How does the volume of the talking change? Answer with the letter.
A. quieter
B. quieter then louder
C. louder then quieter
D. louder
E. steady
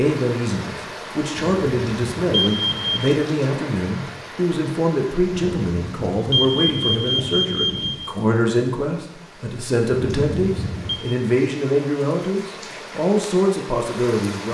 E.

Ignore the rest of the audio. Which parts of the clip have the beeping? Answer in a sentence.
The beeping can be heard from 1.4 to 3.1 s, from 5.3 to 8.0 s and from 9.9 to 11.0 s.